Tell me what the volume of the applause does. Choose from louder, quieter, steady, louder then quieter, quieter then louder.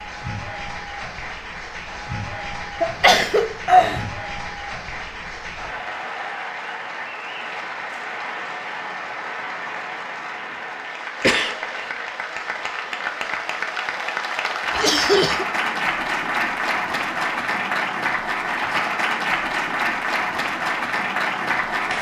louder.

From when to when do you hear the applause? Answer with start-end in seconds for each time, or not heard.
0.0-21.9.